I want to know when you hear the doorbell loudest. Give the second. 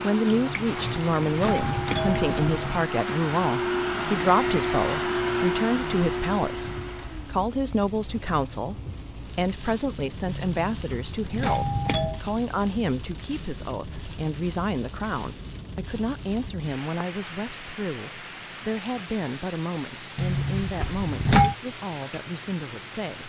21 s.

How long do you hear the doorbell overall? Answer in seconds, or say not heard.
6 s.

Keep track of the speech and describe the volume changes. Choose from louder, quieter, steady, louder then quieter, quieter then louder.
quieter.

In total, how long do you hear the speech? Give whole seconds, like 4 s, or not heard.
23 s.